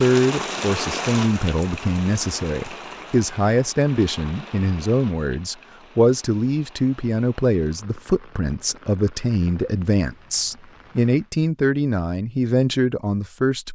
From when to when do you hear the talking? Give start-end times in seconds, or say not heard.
0.0-13.6.